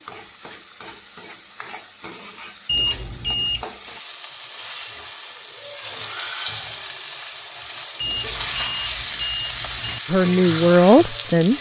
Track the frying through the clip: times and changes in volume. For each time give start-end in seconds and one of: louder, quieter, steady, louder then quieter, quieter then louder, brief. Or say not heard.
0.0-11.5 louder.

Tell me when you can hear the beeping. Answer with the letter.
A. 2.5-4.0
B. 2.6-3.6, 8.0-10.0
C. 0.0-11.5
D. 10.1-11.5
B.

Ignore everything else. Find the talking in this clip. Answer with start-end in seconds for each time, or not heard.
10.1-11.5.